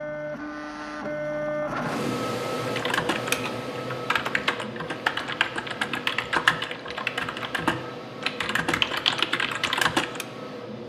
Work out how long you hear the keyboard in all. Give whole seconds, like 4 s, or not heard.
8 s.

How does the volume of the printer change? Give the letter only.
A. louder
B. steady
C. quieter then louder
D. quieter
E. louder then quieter
D.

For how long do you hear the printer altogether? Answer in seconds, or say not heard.
11 s.